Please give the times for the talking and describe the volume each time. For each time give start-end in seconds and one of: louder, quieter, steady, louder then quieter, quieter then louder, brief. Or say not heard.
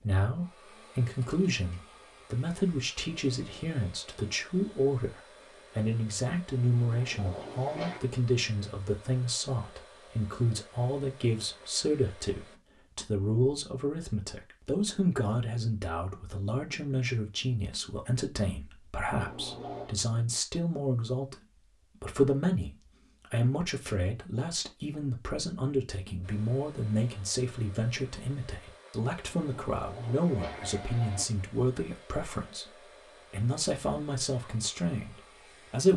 0.0-21.4 steady
22.0-35.9 steady.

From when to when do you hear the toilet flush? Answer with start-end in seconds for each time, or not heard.
6.8-8.0, 19.1-19.9, 29.2-31.2.